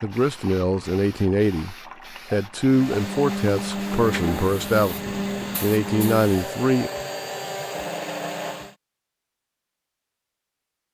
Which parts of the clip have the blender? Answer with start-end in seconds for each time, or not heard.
2.6-8.8.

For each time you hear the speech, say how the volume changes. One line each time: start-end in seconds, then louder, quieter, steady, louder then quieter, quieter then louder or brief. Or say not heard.
0.0-6.9 steady.